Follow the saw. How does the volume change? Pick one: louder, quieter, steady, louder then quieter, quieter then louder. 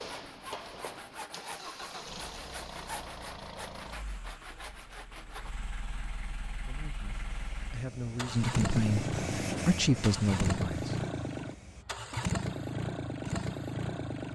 steady.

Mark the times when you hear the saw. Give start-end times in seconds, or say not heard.
0.0-5.5.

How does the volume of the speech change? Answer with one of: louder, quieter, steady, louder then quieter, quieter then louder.
louder.